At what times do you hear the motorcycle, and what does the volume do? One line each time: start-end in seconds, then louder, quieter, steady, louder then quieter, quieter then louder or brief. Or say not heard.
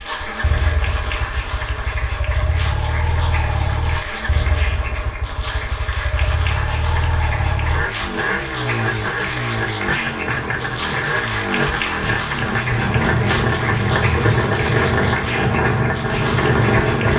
0.0-17.1 louder.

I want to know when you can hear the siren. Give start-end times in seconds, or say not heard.
not heard.